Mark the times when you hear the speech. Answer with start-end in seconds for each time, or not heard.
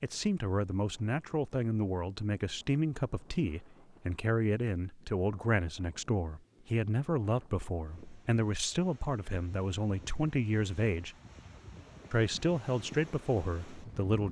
0.0-11.2, 12.1-14.2.